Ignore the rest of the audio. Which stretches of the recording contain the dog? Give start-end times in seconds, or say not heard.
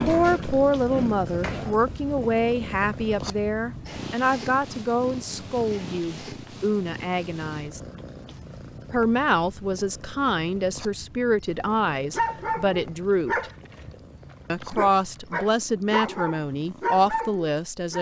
0.0-1.8, 12.1-13.9, 14.6-17.9.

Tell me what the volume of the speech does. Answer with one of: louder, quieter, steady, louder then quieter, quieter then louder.
steady.